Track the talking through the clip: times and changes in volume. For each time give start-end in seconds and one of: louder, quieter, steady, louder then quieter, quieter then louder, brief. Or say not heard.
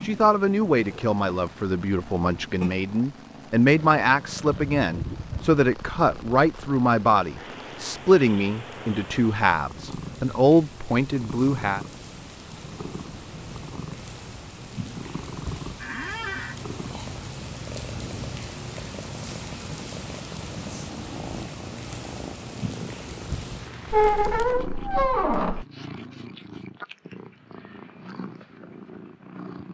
0.0-11.8 steady.